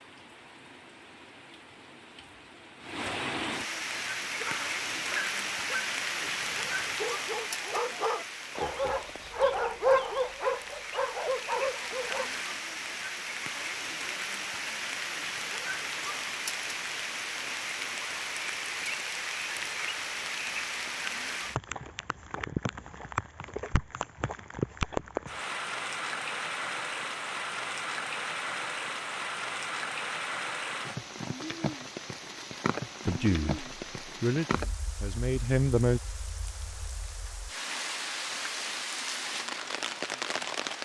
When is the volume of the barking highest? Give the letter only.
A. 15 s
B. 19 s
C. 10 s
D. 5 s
C.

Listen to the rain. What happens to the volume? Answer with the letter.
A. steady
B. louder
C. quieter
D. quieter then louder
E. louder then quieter
A.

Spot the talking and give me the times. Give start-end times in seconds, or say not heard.
33.0-36.0.